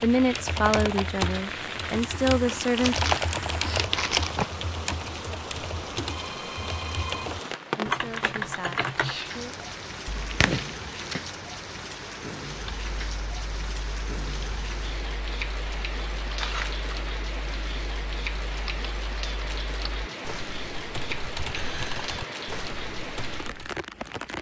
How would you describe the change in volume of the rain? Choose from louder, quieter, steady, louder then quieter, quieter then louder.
steady.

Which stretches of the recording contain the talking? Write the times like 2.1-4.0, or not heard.
0.0-3.0, 7.8-9.6.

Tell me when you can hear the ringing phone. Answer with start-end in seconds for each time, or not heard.
6.0-7.3.